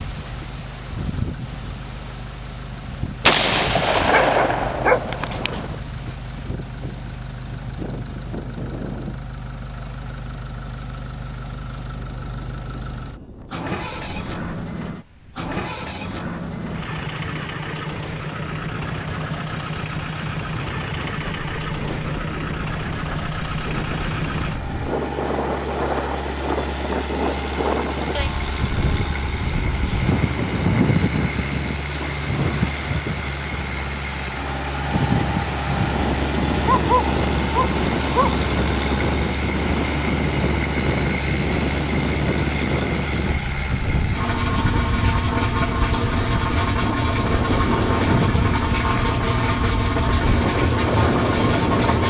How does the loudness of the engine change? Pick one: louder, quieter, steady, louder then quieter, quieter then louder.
louder.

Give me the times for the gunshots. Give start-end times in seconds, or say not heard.
3.2-5.8.